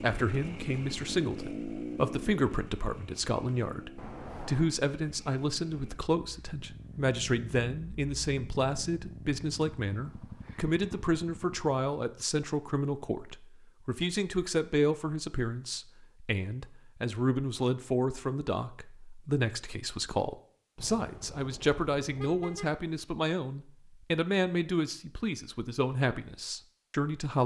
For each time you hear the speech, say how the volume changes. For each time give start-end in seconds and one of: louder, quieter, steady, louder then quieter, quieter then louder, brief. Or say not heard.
0.0-27.4 steady.